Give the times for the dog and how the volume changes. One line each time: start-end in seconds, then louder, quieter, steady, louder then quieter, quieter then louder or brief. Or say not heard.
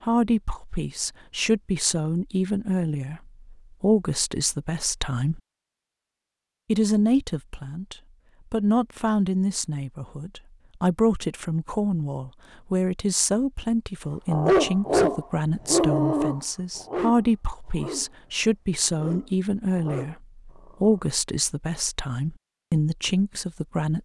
14.2-21.1 quieter.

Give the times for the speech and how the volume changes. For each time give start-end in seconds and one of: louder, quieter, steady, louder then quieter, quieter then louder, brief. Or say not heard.
0.0-5.4 louder then quieter
6.7-24.0 steady.